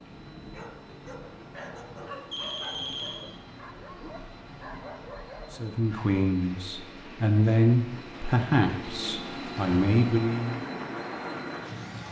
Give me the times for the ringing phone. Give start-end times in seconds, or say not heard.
2.3-3.2.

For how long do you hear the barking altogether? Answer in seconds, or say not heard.
5 s.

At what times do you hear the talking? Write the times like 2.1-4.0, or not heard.
5.5-10.6.